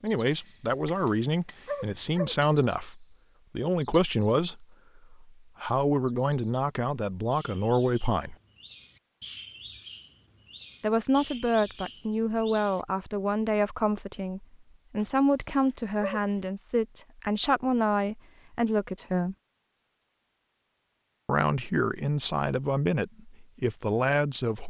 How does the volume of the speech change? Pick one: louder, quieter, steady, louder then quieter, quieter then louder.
steady.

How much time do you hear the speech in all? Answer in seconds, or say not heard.
20 s.